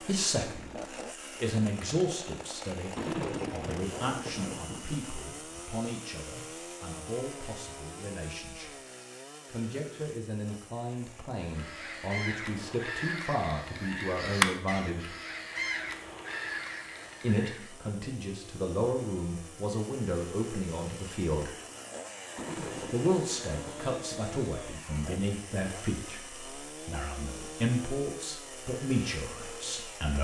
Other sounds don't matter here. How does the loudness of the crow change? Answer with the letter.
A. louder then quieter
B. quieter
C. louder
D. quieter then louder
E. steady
A.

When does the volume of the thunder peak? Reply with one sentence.
The loudest moment of the thunder is at 3 seconds.